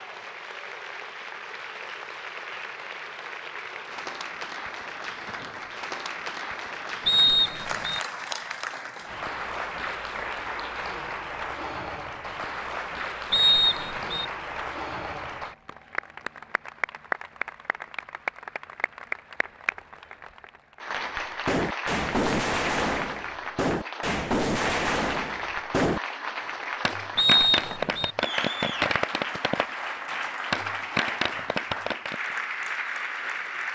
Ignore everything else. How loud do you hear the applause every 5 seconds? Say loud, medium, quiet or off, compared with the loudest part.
medium, loud, loud, loud, loud, loud, loud.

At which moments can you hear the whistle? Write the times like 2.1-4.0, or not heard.
7.0-8.0, 13.3-14.2, 27.1-28.1.